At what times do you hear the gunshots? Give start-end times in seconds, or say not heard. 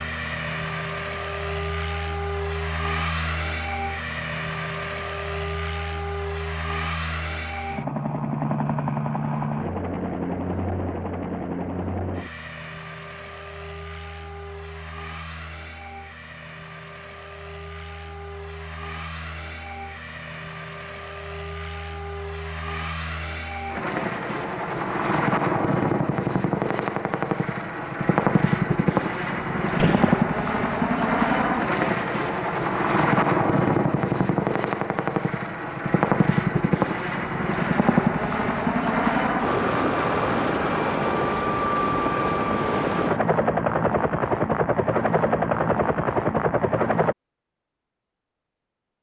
29.8-30.2.